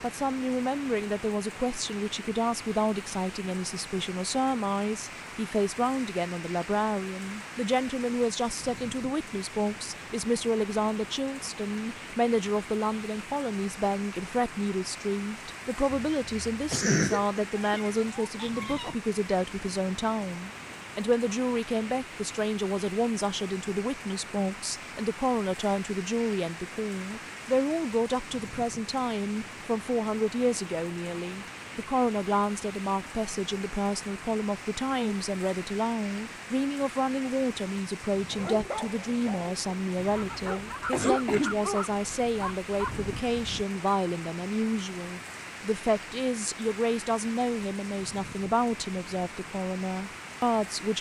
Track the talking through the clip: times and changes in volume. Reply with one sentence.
You can hear the talking from 0.0 to 50.9 s, at a steady volume.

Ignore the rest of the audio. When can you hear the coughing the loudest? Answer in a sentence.
The volume of the coughing peaks at 17 seconds.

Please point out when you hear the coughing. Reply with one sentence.
You can hear the coughing from 15.9 to 17.4 s and from 40.0 to 41.6 s.